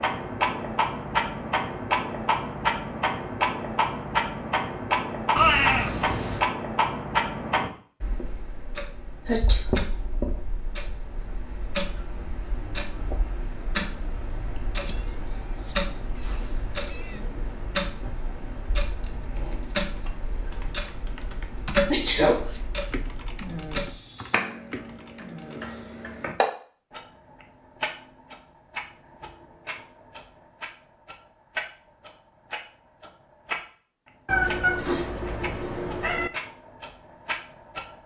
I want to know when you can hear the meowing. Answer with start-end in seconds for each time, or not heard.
5.3-6.5, 14.8-17.2, 34.2-36.3.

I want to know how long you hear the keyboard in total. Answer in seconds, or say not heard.
7 s.